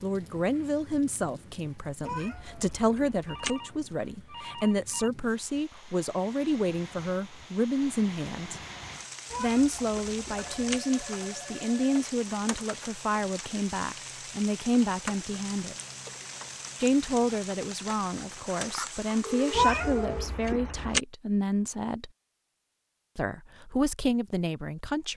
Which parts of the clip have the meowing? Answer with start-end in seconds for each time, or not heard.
2.0-3.5, 9.3-10.8, 19.5-21.0.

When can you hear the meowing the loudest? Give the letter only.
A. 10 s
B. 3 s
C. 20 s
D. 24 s
C.